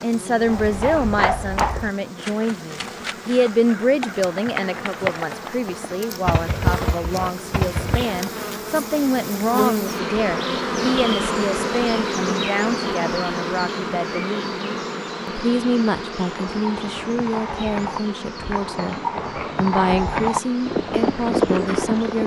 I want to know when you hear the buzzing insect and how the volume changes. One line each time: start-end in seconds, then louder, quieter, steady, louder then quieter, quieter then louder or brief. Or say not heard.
0.0-22.2 louder then quieter.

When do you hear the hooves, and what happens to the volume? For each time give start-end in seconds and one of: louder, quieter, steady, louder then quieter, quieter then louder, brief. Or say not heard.
0.4-8.2 quieter then louder
16.2-22.2 louder.